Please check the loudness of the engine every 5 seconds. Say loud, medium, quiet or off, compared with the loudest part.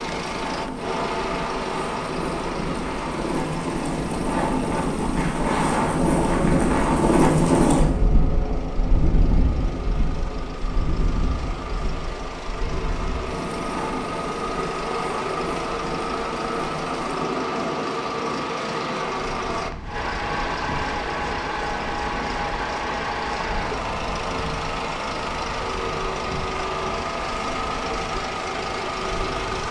loud, quiet, medium, loud, loud, loud.